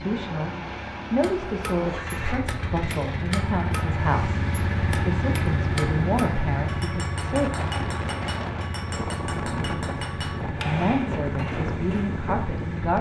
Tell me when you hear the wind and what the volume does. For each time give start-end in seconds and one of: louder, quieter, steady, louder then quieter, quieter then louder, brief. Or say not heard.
3.9-12.9 steady.